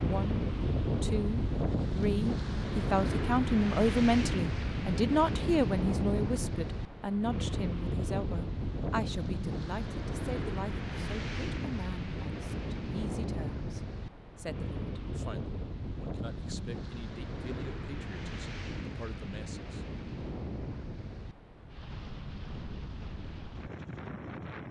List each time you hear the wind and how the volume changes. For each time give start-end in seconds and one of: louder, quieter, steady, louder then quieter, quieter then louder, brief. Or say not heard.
0.0-24.6 quieter.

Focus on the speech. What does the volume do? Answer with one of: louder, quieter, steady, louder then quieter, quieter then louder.
quieter.